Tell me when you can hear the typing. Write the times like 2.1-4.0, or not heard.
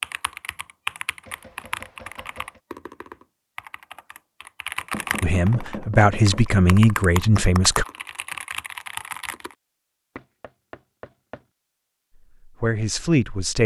0.0-9.6.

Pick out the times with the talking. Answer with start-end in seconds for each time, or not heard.
5.2-7.8, 12.4-13.6.